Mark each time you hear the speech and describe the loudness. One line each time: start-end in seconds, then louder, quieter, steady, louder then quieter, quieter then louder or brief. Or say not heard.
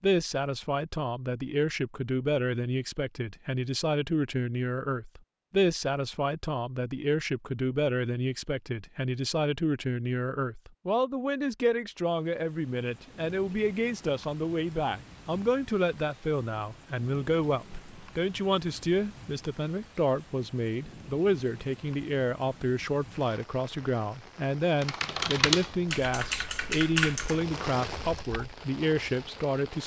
0.0-29.8 steady.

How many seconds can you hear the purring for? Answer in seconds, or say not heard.
not heard.